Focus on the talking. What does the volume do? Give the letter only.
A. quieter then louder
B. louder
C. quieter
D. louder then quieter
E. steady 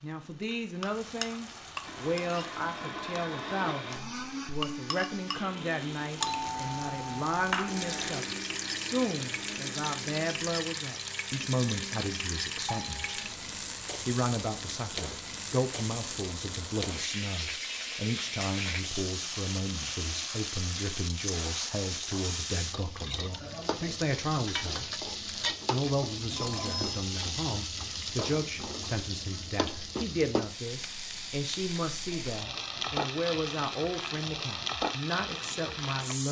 E.